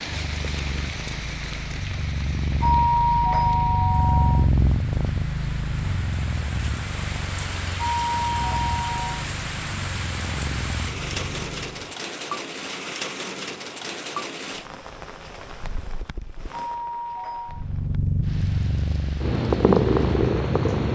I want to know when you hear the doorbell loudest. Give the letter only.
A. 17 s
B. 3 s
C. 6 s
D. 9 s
B.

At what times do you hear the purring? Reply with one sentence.
You can hear the purring from 0.0 to 11.9 s and from 17.5 to 20.9 s.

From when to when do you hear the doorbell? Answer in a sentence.
You can hear the doorbell from 2.6 to 4.5 s, from 7.8 to 9.2 s and from 16.5 to 17.6 s.